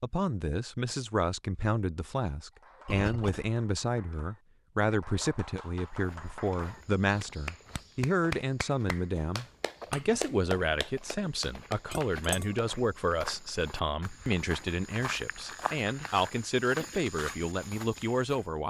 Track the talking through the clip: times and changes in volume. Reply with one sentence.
You can hear the talking from 0.0 to 18.6 s, at a steady volume.